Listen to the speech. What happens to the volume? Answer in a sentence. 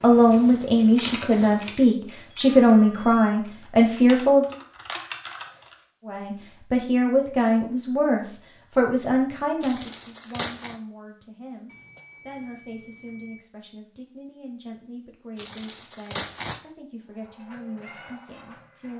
The loudness of the speech goes down.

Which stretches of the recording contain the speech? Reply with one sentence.
You can hear the speech from 0.0 to 4.5 s and from 6.0 to 18.9 s.